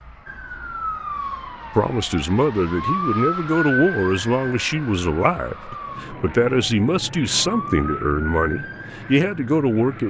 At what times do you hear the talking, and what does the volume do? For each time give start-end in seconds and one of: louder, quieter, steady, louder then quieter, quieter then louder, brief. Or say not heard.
1.8-10.0 steady.